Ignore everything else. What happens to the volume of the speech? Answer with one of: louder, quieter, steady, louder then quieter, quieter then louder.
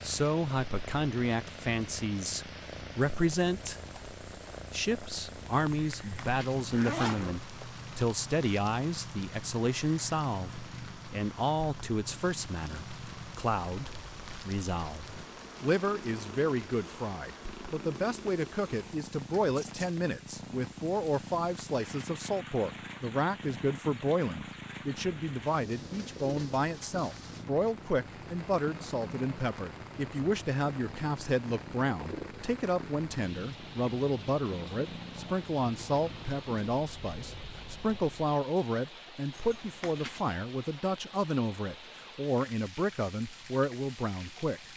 steady.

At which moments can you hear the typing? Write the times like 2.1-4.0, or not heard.
not heard.